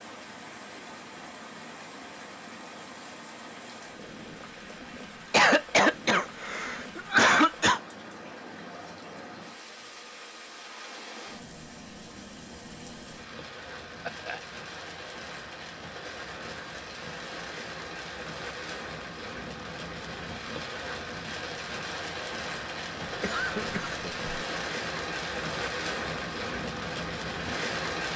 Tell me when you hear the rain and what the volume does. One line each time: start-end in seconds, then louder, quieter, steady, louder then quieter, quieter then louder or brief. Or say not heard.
0.0-28.1 louder.